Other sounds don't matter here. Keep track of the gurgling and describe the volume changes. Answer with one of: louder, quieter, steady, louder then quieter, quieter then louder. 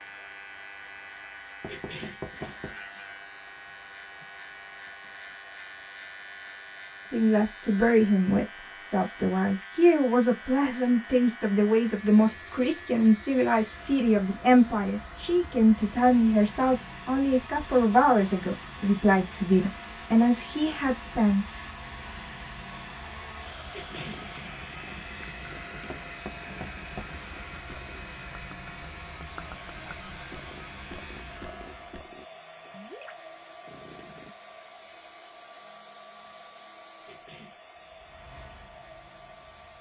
steady.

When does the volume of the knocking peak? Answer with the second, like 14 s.
2 s.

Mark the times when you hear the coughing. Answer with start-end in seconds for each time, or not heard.
1.6-2.2, 23.7-24.2, 37.0-37.6.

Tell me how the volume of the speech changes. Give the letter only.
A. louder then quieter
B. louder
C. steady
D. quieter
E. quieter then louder
C.